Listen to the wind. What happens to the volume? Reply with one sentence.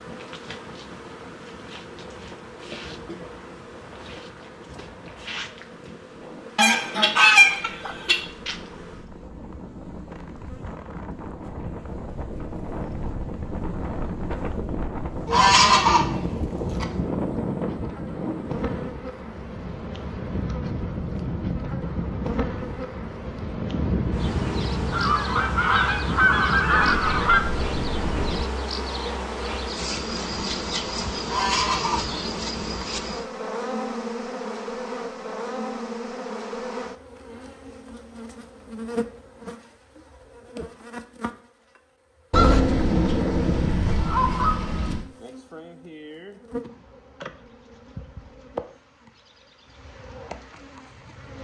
The loudness of the wind goes up.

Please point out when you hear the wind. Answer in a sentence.
You can hear the wind from 0.0 to 28.4 s.